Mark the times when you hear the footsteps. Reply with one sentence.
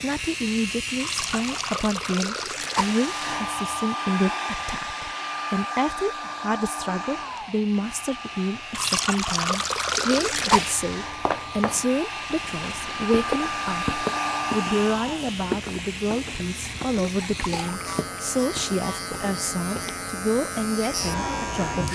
The footsteps can be heard from 11.1 to 20.1 s.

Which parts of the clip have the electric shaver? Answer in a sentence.
The electric shaver can be heard from 0.0 to 4.0 s and from 7.0 to 21.8 s.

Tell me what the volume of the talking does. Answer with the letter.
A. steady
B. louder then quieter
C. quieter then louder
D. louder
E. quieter
A.